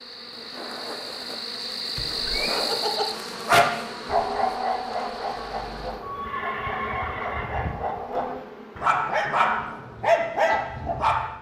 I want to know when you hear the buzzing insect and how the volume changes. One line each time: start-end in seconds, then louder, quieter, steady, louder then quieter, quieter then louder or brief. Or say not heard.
0.0-11.3 quieter.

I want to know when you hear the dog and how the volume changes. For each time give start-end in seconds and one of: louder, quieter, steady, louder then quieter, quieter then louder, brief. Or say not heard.
2.5-11.3 quieter then louder.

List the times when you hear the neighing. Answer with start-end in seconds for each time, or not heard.
1.9-2.6, 6.0-7.8.